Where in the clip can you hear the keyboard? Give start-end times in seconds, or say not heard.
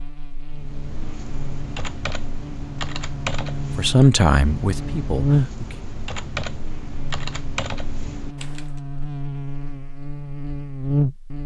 0.5-8.7.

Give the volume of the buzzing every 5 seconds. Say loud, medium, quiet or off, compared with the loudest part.
medium, loud, loud.